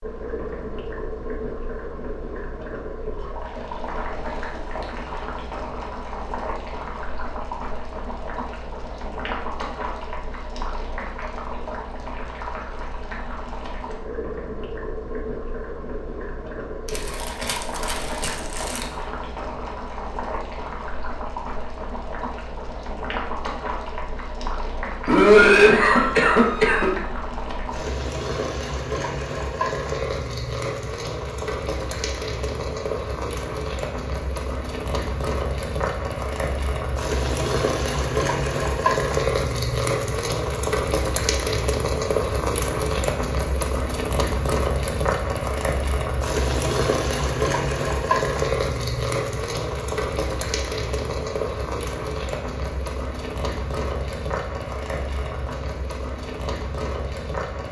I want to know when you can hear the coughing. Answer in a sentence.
The coughing can be heard from 25.1 to 26.9 s.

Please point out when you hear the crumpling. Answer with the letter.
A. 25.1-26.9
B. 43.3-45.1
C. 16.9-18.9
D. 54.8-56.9
C.